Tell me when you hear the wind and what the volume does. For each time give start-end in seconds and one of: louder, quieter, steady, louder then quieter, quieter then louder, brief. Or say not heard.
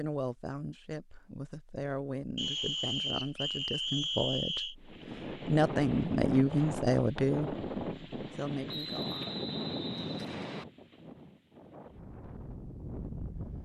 4.8-13.6 quieter.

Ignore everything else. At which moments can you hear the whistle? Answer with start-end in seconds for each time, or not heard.
2.4-4.8, 8.7-10.7.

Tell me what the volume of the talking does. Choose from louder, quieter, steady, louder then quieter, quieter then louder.
louder then quieter.